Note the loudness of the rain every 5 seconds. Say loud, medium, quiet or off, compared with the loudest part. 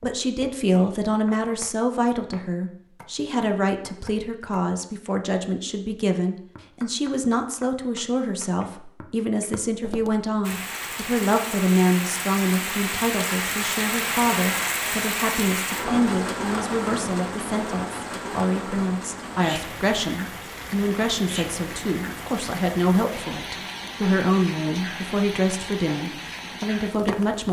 off, off, loud, loud, medium, medium.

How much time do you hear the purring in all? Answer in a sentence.
The purring can't be heard in this clip.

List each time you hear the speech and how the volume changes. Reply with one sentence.
You can hear the speech from 0.0 to 27.4 s, at a steady volume.